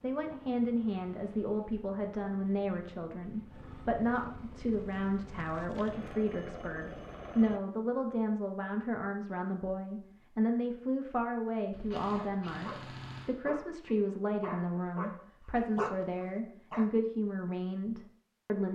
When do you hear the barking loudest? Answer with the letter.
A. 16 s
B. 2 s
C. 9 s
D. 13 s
A.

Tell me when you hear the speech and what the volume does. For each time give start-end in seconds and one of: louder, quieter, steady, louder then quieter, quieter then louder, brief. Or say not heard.
0.0-18.6 steady.